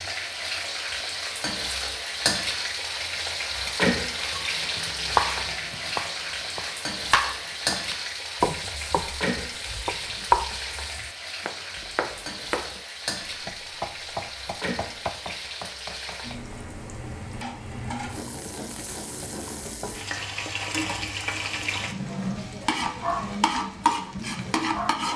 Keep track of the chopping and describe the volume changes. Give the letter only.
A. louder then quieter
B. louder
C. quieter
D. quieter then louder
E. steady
C.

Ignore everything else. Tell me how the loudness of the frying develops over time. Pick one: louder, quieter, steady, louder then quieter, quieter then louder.
quieter then louder.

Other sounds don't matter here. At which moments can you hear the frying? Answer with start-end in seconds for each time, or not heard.
0.0-25.1.